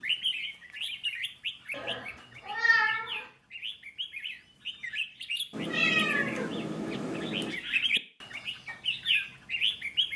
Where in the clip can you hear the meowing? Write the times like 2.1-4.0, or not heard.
1.7-3.2, 5.5-7.5.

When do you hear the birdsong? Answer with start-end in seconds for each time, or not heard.
0.0-10.1.